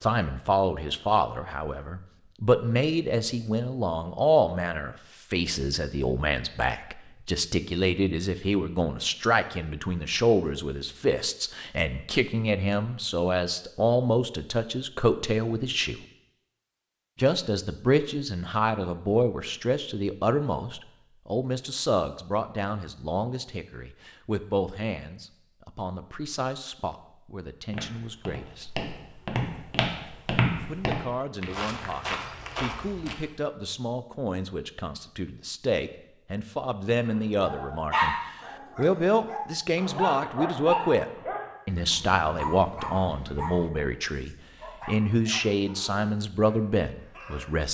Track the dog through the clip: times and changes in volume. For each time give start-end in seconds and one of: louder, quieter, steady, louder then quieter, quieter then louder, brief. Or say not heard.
37.0-47.6 quieter.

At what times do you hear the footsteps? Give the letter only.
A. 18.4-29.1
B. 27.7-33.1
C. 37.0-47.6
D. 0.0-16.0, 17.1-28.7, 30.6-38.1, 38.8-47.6
B.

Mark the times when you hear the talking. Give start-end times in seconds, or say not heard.
0.0-16.0, 17.1-28.7, 30.6-38.1, 38.8-47.6.